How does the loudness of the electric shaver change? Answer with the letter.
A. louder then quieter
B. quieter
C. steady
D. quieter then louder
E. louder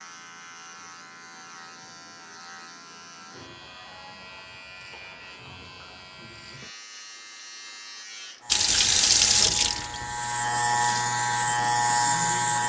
E.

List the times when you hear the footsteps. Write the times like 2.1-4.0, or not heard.
not heard.